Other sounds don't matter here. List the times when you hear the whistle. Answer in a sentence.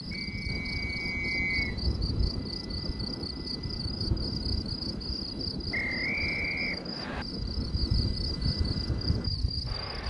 The whistle can be heard from 0.1 to 1.8 s and from 5.7 to 7.2 s.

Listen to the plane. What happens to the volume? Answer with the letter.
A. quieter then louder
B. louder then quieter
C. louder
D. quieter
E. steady
E.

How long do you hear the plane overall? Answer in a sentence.
You can hear the plane for 10 seconds altogether.